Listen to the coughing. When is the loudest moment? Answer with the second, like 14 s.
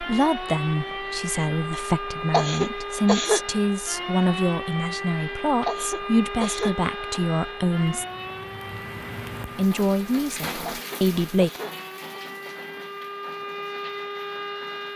3 s.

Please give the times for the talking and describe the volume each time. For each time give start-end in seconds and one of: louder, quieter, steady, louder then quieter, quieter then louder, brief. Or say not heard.
0.0-8.1 steady
9.6-11.5 brief.